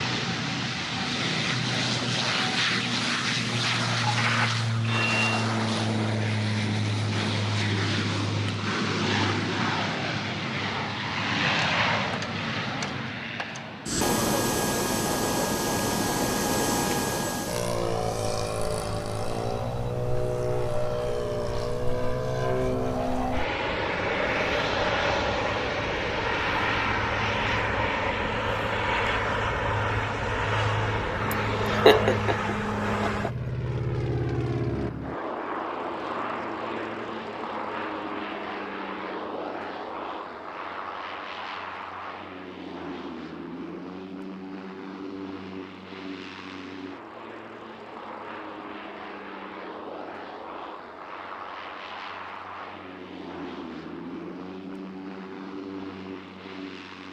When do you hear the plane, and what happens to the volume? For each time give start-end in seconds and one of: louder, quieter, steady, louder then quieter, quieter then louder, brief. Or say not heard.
0.0-57.0 quieter.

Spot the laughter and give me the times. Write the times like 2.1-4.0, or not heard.
31.3-33.3.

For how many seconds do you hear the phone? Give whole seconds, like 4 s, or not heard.
2 s.